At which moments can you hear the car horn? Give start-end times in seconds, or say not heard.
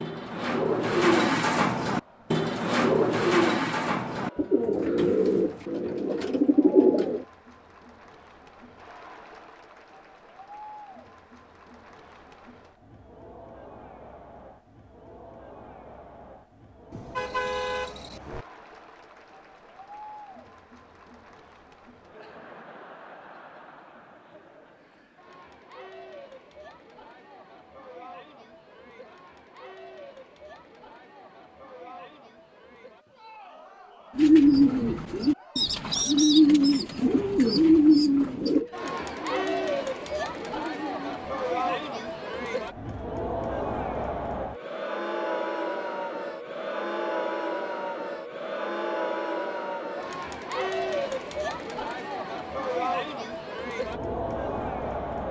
16.9-18.4.